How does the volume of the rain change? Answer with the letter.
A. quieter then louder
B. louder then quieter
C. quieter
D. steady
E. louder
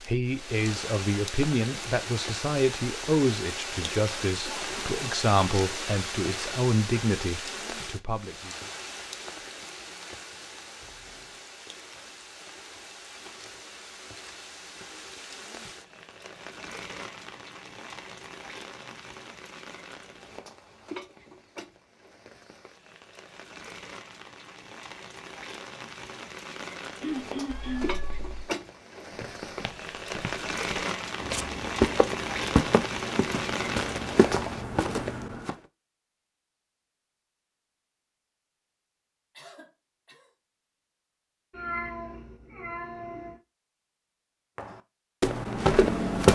A.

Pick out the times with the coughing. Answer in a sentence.
The coughing can be heard from 4.5 to 5.2 s, from 27.0 to 28.0 s and from 39.4 to 40.3 s.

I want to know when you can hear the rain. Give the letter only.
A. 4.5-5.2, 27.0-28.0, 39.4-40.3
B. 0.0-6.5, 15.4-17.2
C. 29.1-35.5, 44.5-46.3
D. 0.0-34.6
D.